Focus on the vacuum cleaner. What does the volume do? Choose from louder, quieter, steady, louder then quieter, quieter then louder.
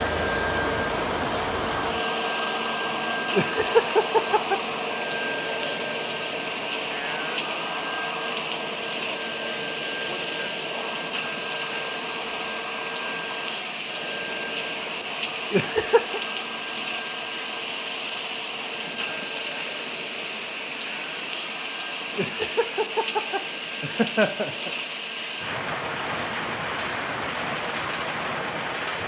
quieter.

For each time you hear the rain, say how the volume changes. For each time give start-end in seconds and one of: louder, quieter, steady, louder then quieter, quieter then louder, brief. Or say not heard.
0.0-29.0 steady.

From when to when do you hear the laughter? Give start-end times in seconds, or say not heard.
3.3-4.6, 15.5-16.2, 22.1-24.7.